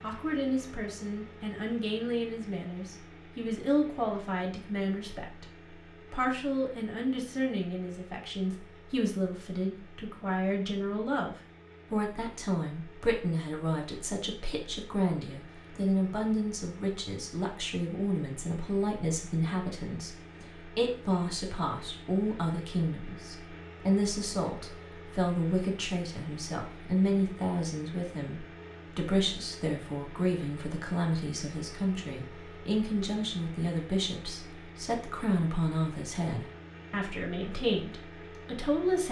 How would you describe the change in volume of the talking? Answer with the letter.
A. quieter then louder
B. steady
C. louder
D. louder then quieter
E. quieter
B.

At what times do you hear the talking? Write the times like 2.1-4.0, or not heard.
0.0-5.5, 6.1-39.0.